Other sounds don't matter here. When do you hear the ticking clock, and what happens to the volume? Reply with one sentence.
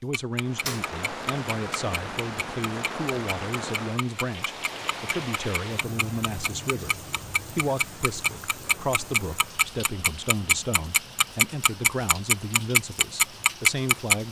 The ticking clock can be heard from 0.1 to 14.2 s, getting louder.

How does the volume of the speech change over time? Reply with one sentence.
The volume of the speech stays about the same.